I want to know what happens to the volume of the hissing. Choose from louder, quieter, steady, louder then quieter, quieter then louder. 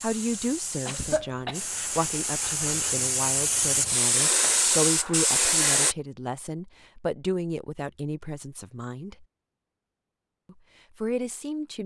louder.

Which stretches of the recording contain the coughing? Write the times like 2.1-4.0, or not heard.
0.8-1.6.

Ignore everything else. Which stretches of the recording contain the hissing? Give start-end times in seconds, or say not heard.
0.0-6.0.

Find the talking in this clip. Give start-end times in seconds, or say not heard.
0.0-9.2, 10.4-11.8.